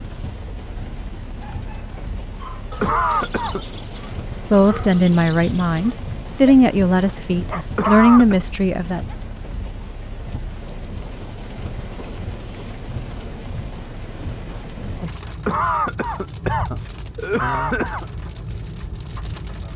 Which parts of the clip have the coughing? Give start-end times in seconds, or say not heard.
2.8-3.6, 7.8-8.3, 15.4-18.1.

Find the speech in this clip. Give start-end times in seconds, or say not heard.
4.5-9.2.